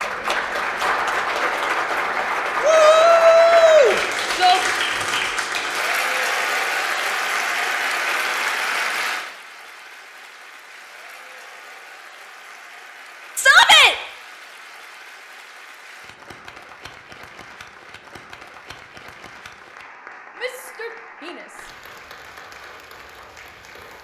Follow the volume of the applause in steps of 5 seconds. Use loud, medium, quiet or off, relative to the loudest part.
loud, loud, quiet, quiet, quiet.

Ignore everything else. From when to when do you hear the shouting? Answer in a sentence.
You can hear the shouting from 2.6 to 4.6 s, from 13.3 to 13.9 s and from 20.4 to 21.7 s.